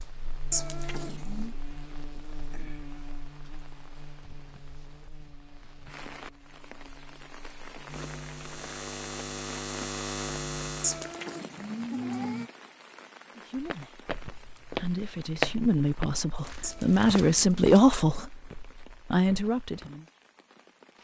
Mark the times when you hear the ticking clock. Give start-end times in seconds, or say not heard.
not heard.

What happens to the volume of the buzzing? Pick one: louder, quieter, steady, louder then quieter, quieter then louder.
quieter then louder.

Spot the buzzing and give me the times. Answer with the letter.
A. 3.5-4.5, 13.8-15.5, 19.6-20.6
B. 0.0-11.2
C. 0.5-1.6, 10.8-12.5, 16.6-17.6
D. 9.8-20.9
B.